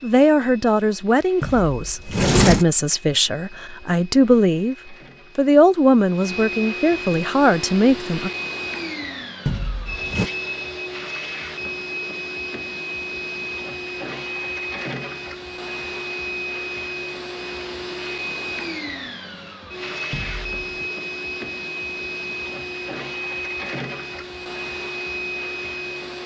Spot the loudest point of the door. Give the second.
2 s.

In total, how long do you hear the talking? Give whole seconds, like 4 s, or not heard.
8 s.